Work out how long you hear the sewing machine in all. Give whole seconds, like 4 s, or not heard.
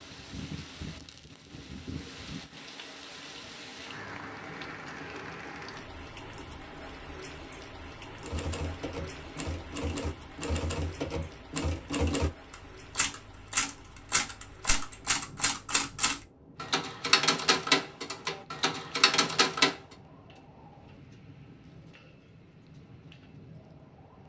not heard.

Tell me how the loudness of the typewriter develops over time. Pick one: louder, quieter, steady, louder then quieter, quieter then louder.
louder.